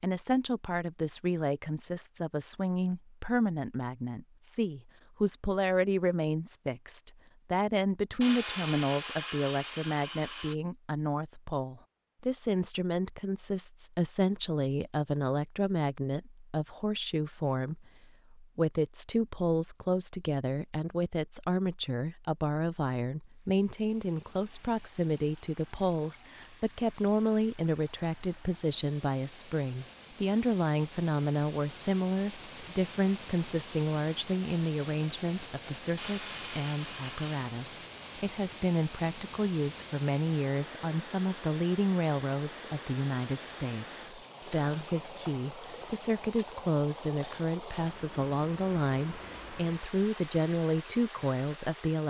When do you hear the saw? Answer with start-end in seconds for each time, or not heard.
8.2-10.6, 36.0-37.5.